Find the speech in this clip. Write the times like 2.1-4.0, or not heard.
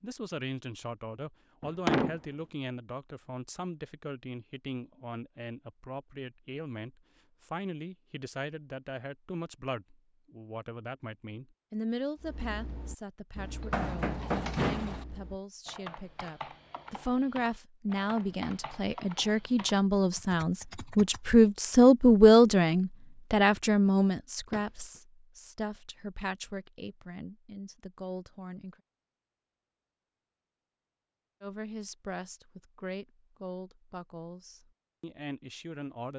0.0-28.8, 31.4-36.1.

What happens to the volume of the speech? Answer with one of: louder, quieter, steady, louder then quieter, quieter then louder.
louder then quieter.